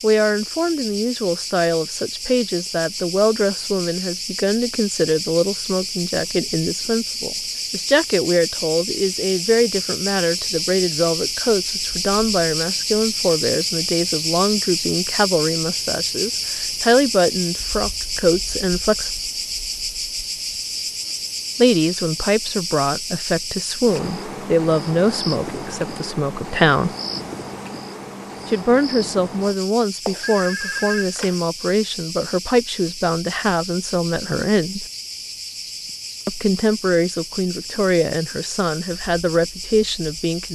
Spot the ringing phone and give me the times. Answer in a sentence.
The ringing phone can be heard from 30.1 to 31.4 s.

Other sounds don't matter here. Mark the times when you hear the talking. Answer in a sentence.
You can hear the talking from 0.0 to 19.1 s, from 21.6 to 26.9 s, from 28.4 to 34.9 s and from 36.2 to 40.5 s.